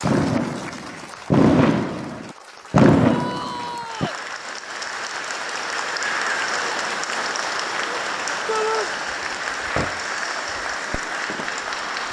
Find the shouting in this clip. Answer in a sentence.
You can hear the shouting from 3.0 to 4.2 s and from 8.4 to 8.9 s.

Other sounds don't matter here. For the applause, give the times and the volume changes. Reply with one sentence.
You can hear the applause from 0.0 to 12.0 s, getting louder.